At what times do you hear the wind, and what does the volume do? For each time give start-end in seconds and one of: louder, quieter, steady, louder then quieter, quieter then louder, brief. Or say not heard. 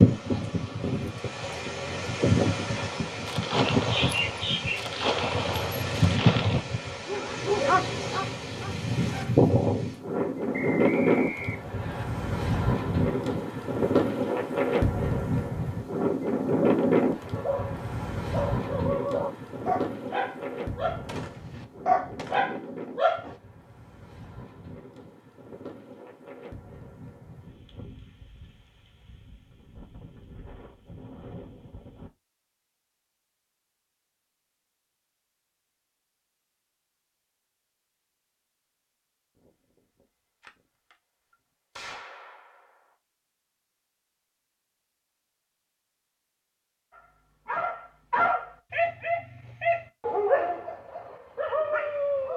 0.0-32.1 quieter.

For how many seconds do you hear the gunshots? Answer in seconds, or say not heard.
8 s.